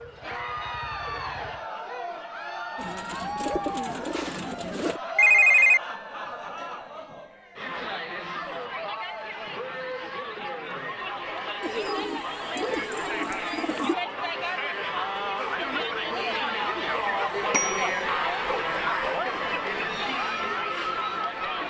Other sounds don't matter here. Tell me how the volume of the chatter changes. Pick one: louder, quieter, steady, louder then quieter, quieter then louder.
louder.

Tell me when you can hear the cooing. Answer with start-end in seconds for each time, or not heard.
2.8-5.0, 11.6-13.9.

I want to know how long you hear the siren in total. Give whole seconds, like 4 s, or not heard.
2 s.